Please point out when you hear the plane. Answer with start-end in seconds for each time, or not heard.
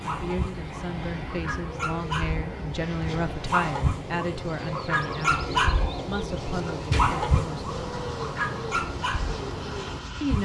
0.0-10.4.